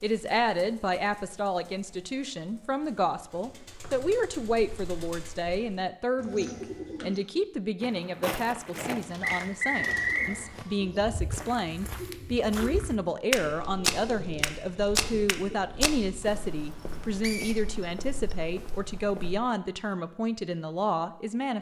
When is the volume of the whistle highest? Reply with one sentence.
The loudest moment of the whistle is at 10 seconds.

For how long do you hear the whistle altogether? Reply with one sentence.
You can hear the whistle for 3 seconds altogether.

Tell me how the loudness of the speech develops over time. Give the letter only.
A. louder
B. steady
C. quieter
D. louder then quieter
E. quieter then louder
B.